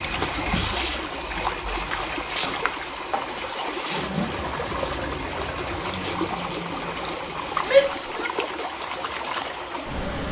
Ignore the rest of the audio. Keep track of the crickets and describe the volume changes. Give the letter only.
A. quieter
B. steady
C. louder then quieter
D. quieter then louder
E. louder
A.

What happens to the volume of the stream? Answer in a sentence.
The loudness of the stream stays about the same.